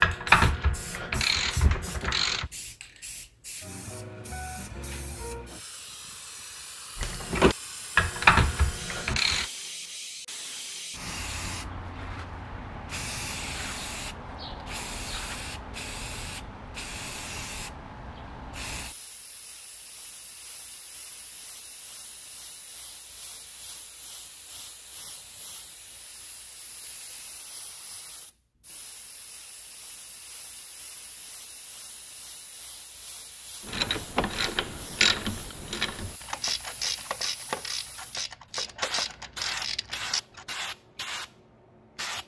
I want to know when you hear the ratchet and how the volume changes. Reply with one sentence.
The ratchet can be heard briefly from 0.0 to 2.5 s; briefly from 7.0 to 9.5 s; and from 33.6 to 40.5 s, getting quieter.